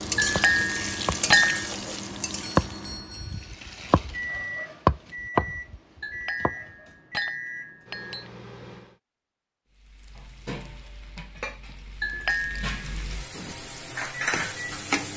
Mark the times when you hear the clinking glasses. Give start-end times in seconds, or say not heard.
0.1-1.6, 6.0-8.3, 12.0-12.8.